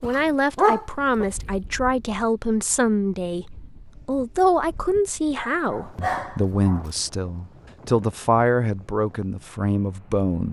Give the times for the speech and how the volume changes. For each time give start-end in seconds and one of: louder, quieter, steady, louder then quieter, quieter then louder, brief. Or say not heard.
0.0-10.4 steady.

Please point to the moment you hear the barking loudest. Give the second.
1 s.